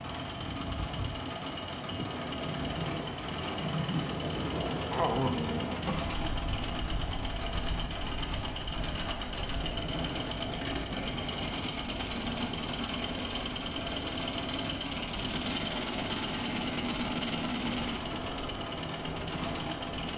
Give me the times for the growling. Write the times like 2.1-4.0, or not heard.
4.9-6.2.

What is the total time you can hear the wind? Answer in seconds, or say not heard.
20 s.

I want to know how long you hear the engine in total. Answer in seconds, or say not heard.
20 s.